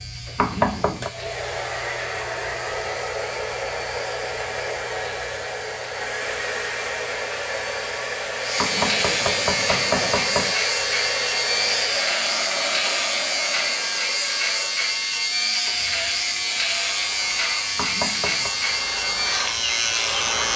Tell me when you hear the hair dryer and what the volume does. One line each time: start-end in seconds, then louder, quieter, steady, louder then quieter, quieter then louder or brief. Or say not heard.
0.0-20.5 quieter.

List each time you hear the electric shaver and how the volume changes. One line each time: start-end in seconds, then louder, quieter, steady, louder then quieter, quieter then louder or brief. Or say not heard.
0.0-20.5 louder.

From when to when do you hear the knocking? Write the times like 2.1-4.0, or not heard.
0.3-1.1, 8.6-10.6, 17.8-18.5.